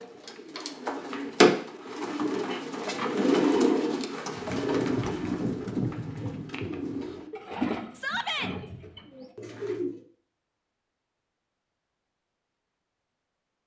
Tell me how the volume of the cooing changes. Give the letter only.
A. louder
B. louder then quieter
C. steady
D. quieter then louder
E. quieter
E.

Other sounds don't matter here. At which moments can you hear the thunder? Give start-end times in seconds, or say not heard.
4.3-7.2.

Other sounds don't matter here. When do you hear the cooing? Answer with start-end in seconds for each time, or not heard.
0.0-10.1.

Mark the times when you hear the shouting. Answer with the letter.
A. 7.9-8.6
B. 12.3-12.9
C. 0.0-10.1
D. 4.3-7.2
A.